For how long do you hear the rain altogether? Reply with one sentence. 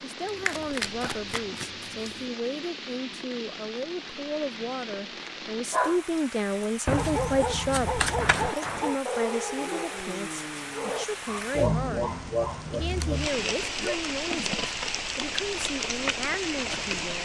You can hear the rain for 17 seconds altogether.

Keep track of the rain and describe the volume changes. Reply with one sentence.
The loudness of the rain goes up.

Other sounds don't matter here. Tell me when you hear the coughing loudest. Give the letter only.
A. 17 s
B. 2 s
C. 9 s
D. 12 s
D.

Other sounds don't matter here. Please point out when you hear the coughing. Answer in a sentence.
You can hear the coughing from 0.8 to 1.6 s, from 8.2 to 8.9 s and from 11.6 to 14.0 s.